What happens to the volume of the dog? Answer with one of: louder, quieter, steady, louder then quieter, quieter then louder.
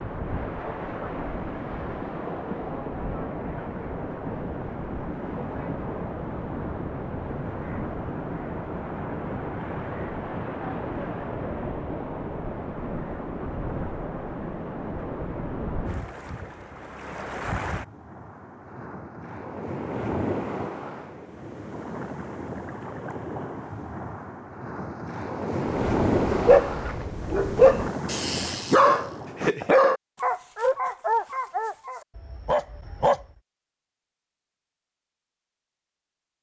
quieter.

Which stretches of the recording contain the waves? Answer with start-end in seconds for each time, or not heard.
0.0-29.6.